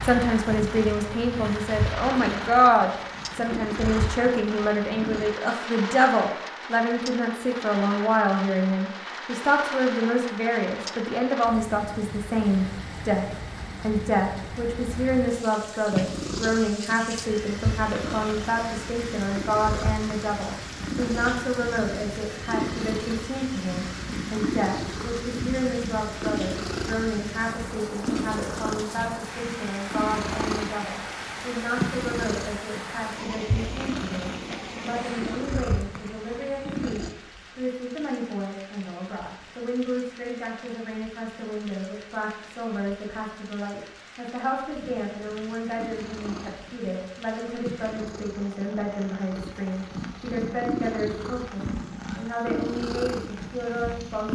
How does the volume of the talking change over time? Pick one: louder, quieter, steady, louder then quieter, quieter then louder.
quieter.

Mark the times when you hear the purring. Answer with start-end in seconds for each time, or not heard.
0.0-5.3, 15.9-37.1, 44.8-54.2.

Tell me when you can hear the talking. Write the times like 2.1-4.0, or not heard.
0.0-54.2.